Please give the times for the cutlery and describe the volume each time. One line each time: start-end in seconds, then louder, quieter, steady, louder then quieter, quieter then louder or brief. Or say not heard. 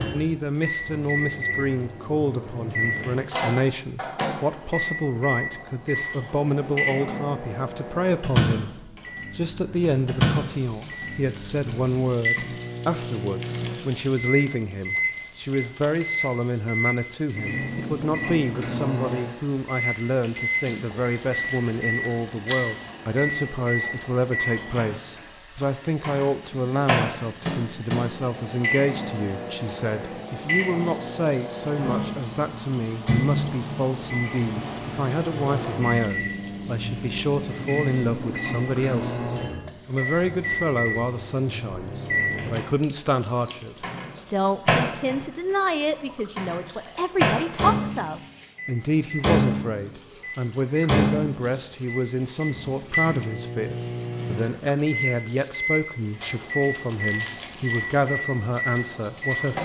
not heard.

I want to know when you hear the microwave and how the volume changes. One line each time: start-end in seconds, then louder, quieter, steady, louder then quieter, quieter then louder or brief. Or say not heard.
0.0-59.6 steady.